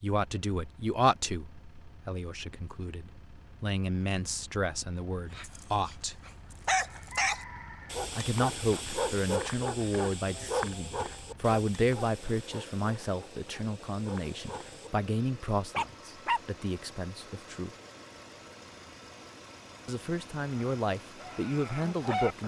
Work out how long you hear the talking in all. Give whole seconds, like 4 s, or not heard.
18 s.